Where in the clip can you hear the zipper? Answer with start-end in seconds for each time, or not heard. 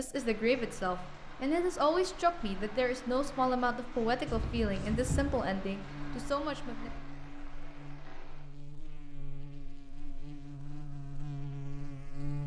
4.2-5.5.